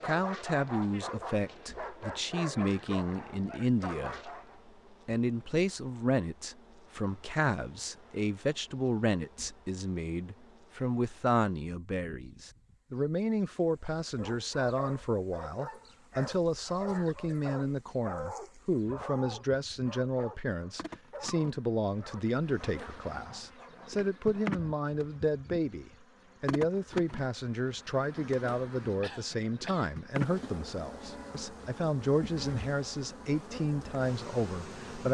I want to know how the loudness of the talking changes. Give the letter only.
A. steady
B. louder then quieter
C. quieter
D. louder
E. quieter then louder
A.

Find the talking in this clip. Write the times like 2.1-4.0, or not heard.
0.1-4.3, 5.0-35.1.